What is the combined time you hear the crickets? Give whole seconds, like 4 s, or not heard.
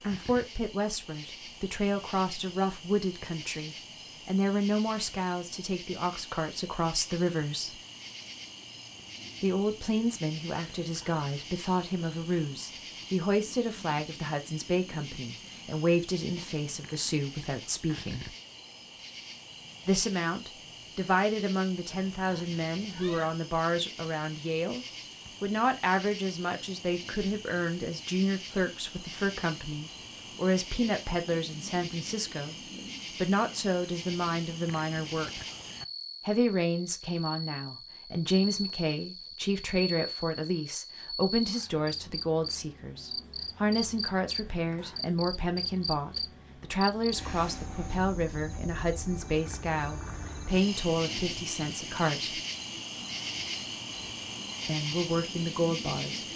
56 s.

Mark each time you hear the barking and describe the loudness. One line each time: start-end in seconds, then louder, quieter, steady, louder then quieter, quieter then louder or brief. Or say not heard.
not heard.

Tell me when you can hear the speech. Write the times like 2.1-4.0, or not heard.
0.0-7.8, 9.4-18.4, 19.9-35.5, 36.2-52.4, 54.6-56.2.